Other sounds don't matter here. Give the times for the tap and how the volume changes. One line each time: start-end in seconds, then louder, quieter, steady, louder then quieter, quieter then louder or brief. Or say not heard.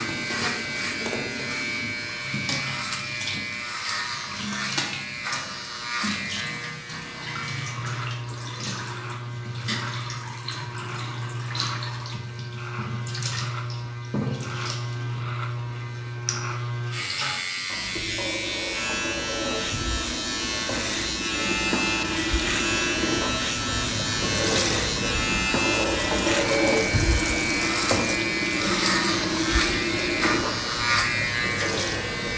0.0-32.3 louder.